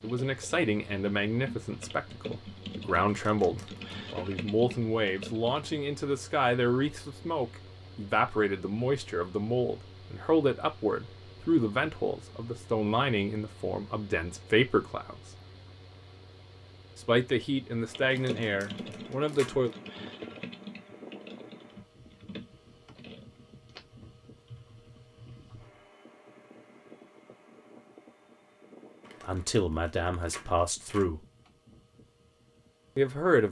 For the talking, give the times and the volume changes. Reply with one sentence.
The talking can be heard from 0.0 to 15.2 s, at a steady volume; briefly from 16.9 to 19.7 s; briefly from 29.2 to 31.2 s; and briefly from 33.0 to 33.4 s.